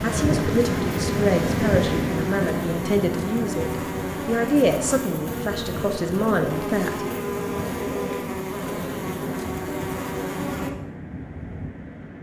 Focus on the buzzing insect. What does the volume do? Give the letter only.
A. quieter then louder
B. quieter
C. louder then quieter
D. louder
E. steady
E.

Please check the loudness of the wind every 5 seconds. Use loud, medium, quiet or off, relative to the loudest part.
loud, medium, medium.